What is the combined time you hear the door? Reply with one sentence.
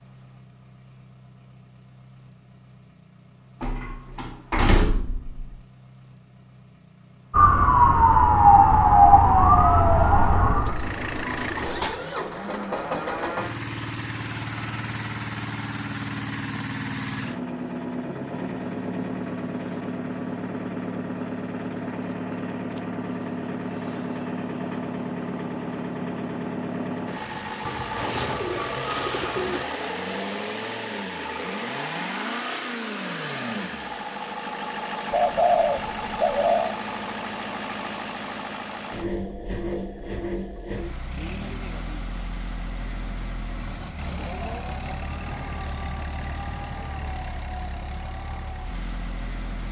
You can hear the door for 2 seconds altogether.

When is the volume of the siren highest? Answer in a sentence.
The loudest moment of the siren is at 9 seconds.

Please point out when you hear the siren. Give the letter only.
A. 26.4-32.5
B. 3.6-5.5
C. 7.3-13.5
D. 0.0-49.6
C.